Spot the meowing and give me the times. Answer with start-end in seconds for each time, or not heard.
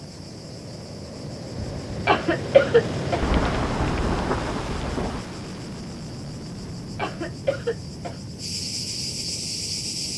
not heard.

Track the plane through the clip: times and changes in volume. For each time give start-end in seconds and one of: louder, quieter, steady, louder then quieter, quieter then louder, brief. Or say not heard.
0.0-10.1 louder then quieter.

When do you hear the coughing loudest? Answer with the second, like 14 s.
3 s.